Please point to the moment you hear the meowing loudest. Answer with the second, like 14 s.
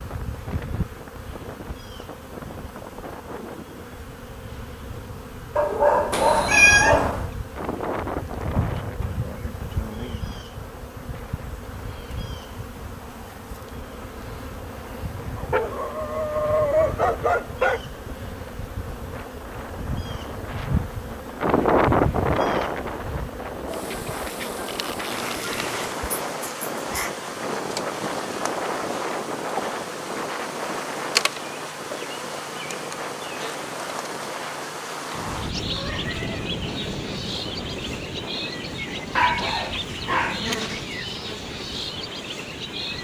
7 s.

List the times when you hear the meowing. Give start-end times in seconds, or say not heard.
6.1-7.3, 35.1-36.5.